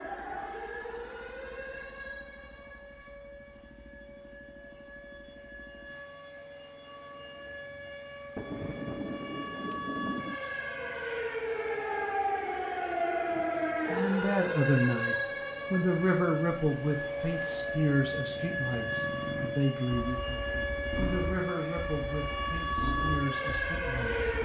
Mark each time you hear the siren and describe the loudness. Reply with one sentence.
The siren can be heard from 0.0 to 24.4 s, getting louder.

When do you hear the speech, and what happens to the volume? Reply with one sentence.
The speech can be heard from 13.8 to 24.4 s, getting quieter.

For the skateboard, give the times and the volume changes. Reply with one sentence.
You can't hear the skateboard here.